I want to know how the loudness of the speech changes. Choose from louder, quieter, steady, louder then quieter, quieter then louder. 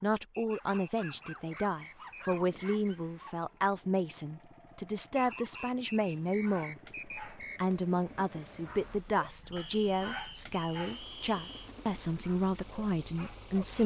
steady.